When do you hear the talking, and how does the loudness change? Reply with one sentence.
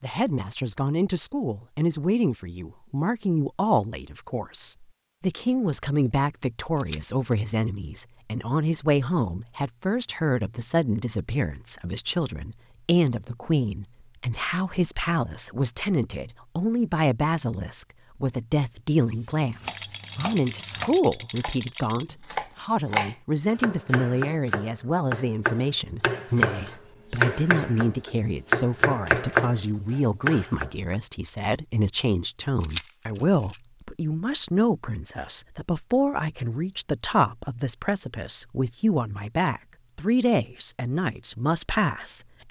You can hear the talking from 0.0 to 42.4 s, at a steady volume.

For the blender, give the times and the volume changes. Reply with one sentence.
You can't hear the blender here.